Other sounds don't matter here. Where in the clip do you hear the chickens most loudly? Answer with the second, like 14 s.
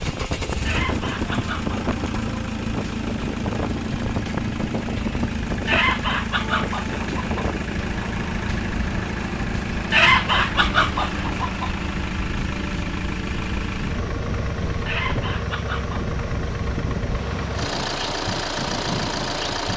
10 s.